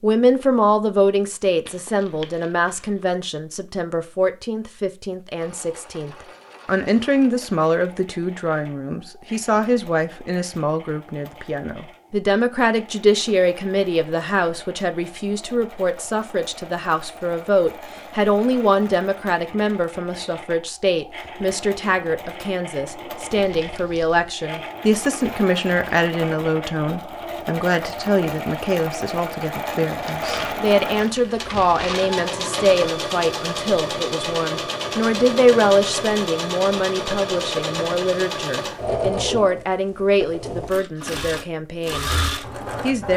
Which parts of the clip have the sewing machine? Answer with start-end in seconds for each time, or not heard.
5.4-43.1.